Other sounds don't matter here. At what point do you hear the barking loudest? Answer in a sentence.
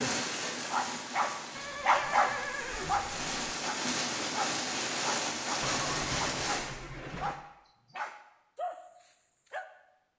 The loudest moment of the barking is at 2 seconds.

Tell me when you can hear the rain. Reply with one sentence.
The rain can be heard from 0.0 to 6.7 s.